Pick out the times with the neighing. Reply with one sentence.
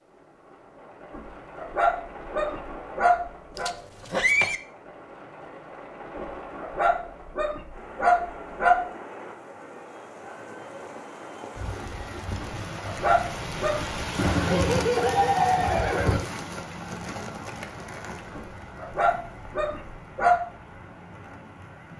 The neighing can be heard from 3.5 to 4.6 s and from 14.2 to 16.2 s.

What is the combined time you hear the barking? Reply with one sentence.
The barking can be heard for 9 seconds in total.